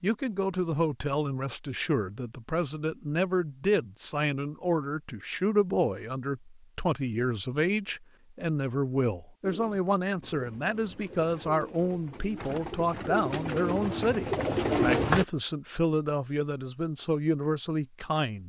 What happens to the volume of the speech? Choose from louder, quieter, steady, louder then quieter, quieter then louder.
steady.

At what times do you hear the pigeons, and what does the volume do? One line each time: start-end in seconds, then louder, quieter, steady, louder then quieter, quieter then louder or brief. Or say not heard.
9.4-15.2 louder.